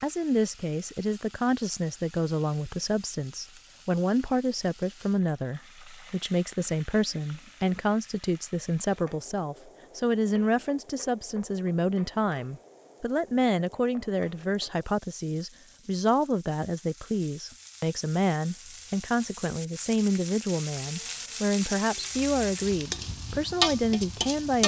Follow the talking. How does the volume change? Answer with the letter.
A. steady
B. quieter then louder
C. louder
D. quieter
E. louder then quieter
A.